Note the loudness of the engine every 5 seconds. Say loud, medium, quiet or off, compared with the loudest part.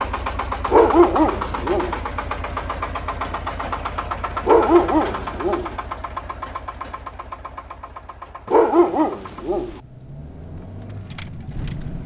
loud, medium, medium.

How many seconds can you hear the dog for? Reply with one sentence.
You can hear the dog for 4 seconds altogether.